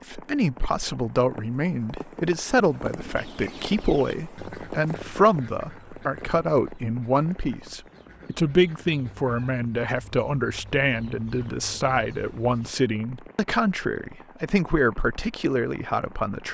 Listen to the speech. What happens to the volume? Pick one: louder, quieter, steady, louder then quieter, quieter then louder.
steady.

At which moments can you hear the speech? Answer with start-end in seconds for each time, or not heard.
0.1-16.4.